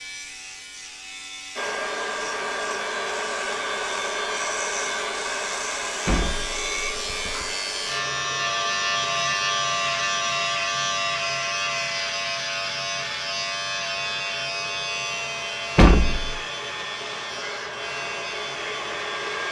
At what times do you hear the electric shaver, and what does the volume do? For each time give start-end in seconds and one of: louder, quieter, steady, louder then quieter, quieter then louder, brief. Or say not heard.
0.0-19.4 louder then quieter.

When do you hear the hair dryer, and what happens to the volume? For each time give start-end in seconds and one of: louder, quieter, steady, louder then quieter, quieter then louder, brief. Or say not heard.
1.6-19.4 quieter then louder.